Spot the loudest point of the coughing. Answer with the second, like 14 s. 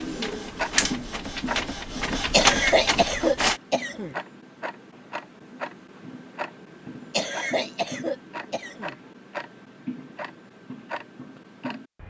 3 s.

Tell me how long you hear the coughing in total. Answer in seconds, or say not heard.
4 s.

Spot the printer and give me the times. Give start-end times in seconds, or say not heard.
0.0-3.6.